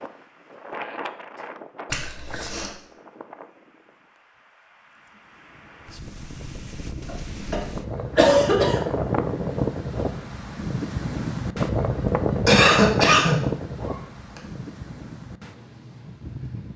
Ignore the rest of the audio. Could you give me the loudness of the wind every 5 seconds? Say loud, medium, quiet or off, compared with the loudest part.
quiet, loud, loud, quiet.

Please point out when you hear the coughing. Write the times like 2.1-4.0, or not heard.
1.9-2.7, 7.0-8.8, 12.4-14.4.